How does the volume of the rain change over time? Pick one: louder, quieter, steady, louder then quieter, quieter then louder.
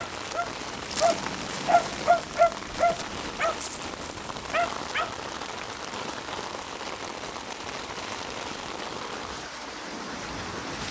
steady.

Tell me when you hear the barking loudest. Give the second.
2 s.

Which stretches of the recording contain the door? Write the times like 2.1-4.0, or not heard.
not heard.